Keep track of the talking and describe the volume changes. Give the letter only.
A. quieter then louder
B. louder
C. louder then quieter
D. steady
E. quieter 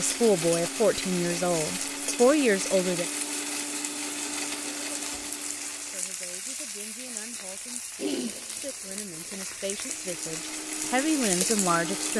A.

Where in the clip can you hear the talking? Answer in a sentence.
You can hear the talking from 0.0 to 3.0 s and from 5.9 to 12.1 s.